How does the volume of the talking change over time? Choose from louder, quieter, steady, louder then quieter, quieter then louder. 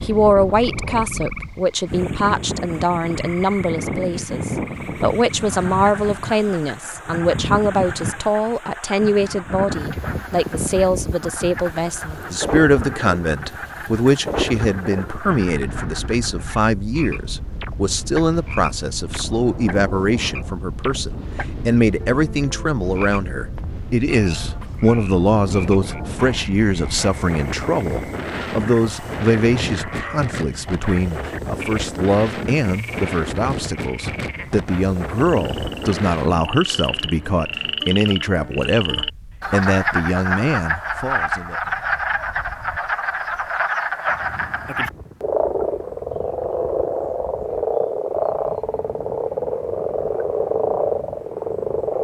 steady.